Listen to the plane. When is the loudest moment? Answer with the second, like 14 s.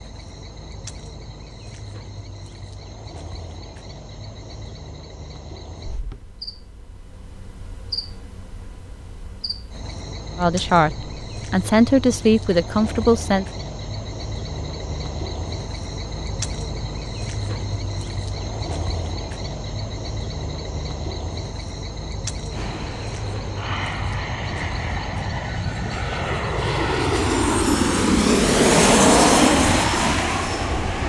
29 s.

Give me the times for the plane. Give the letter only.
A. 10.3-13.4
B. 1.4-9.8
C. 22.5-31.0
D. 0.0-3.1
C.